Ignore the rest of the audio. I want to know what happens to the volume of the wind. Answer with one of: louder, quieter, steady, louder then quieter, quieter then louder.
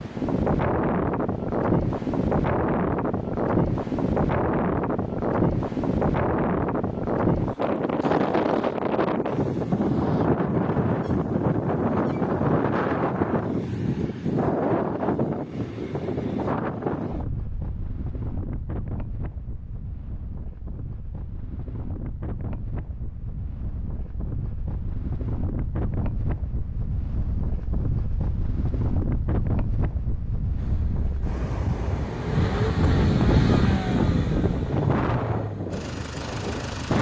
quieter then louder.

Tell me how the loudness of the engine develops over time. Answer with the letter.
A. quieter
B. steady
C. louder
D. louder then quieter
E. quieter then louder
D.